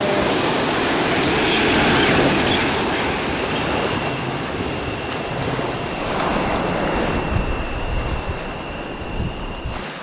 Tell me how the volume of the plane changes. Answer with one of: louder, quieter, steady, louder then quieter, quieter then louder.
quieter.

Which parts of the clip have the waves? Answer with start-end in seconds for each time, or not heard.
0.0-9.9.